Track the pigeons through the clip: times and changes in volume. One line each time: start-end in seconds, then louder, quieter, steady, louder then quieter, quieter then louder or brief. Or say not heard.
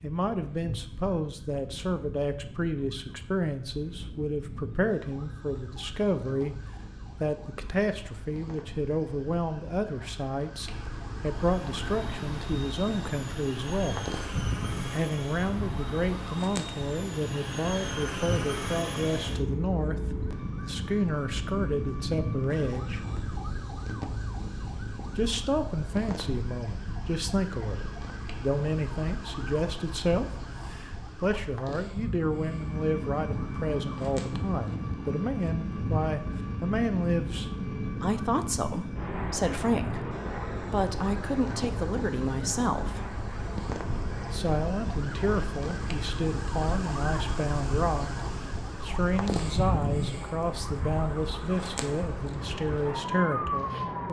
not heard.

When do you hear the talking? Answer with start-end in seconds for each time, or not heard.
0.0-6.6, 7.2-14.1, 14.9-23.0, 25.1-43.0, 44.3-54.0.